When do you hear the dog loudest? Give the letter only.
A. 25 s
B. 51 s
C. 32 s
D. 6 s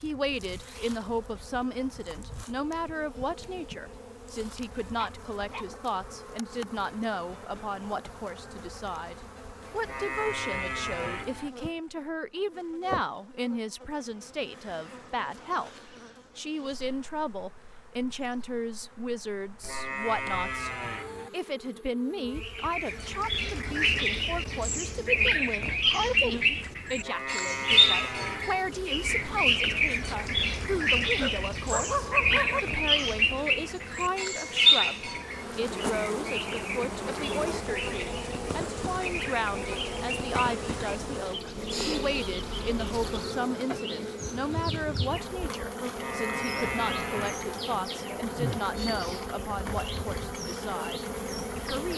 C.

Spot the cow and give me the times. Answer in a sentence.
You can hear the cow from 9.8 to 11.5 s, from 19.6 to 21.3 s, from 27.0 to 28.5 s and from 46.0 to 47.6 s.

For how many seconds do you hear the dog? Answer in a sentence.
The dog can be heard for 2 seconds in total.